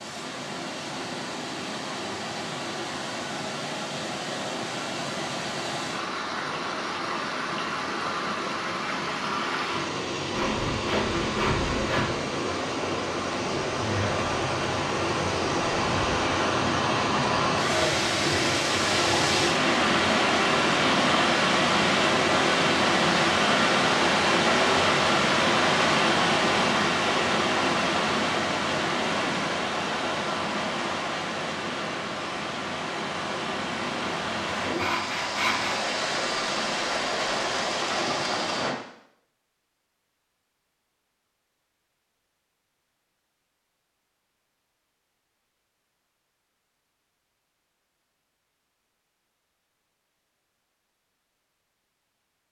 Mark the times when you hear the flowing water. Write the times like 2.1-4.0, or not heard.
0.0-38.8.